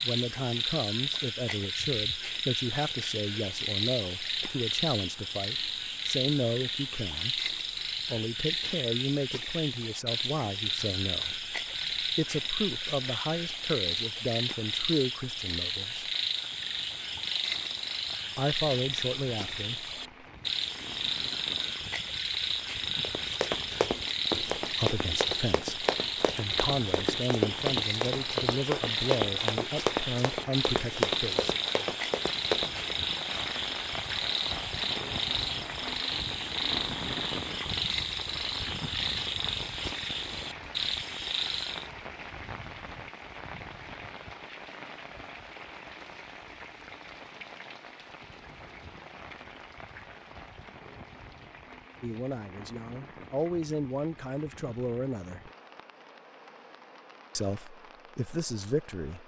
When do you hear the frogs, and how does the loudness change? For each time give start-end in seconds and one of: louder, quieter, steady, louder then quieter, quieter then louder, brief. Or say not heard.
0.0-41.9 steady.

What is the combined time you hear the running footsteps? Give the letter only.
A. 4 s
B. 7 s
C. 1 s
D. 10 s
D.